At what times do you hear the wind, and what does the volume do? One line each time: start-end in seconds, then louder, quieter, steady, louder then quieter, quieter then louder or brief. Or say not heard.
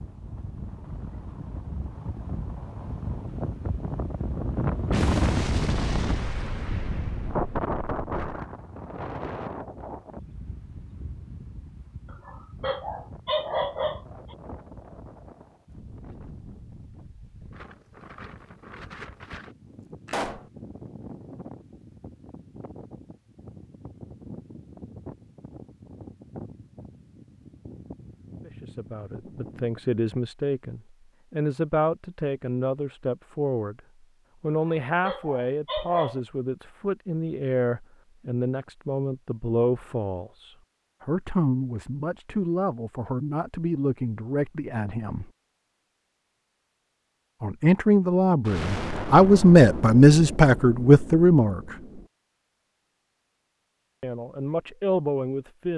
0.0-30.0 quieter.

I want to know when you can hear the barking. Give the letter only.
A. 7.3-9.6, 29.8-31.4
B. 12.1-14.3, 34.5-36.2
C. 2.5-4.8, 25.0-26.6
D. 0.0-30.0
B.